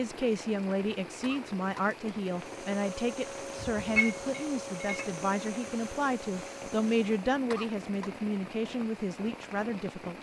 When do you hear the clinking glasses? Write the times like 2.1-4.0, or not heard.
4.0-5.0.